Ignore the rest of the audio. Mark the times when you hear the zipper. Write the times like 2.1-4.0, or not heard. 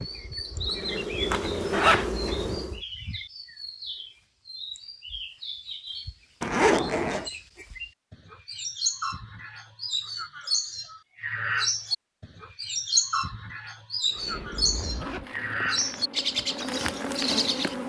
1.3-2.1, 6.4-7.3, 14.2-15.3.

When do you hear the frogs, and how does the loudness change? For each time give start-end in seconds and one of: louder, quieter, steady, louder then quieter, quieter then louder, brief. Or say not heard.
not heard.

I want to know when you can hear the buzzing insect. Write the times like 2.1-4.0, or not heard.
0.0-2.8, 14.1-17.8.